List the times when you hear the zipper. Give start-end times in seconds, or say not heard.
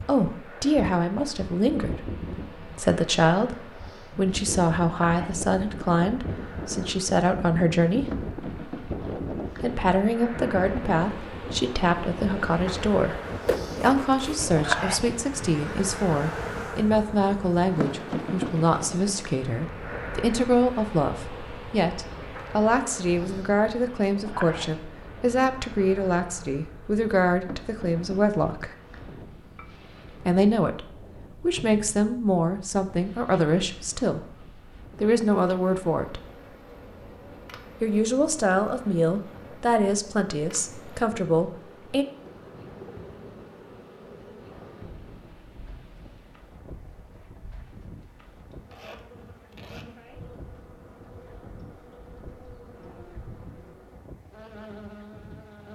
13.4-14.3.